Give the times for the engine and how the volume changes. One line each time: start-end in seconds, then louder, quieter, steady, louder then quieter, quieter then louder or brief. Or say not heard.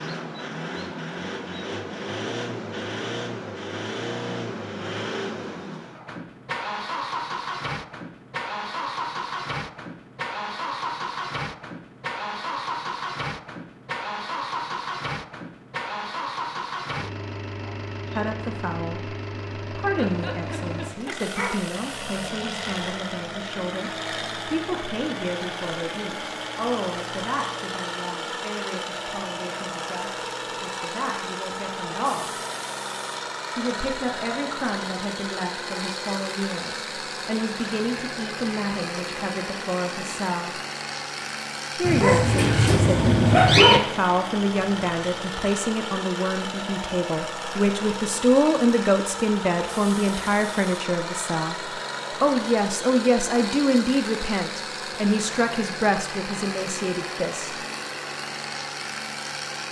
0.0-59.6 steady.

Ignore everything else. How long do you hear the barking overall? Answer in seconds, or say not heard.
4 s.